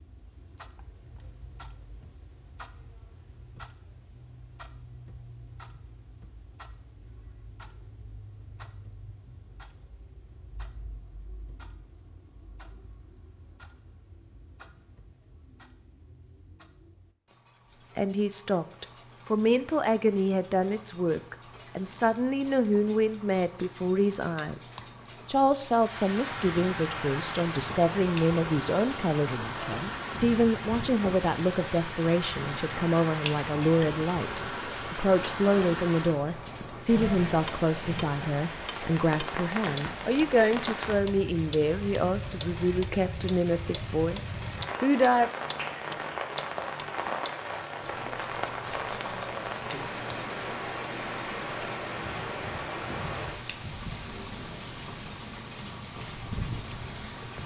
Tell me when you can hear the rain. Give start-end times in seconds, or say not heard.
25.8-57.4.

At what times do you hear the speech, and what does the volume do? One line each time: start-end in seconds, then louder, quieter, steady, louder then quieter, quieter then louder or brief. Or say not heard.
17.9-45.3 steady.